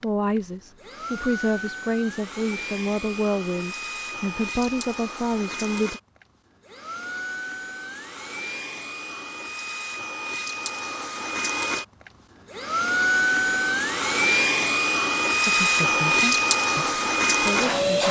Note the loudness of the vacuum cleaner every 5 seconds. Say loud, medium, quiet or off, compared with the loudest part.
quiet, quiet, loud, loud.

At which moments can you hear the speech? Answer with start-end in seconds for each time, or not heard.
0.0-6.0, 15.4-18.0.